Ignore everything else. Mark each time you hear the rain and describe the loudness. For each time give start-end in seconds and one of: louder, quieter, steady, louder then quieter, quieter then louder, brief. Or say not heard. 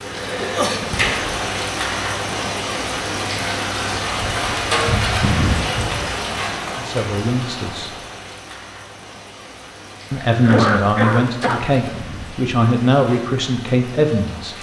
0.0-14.5 quieter.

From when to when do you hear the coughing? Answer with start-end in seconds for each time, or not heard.
0.4-0.8, 10.4-11.6.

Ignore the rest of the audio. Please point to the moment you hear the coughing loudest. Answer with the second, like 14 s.
11 s.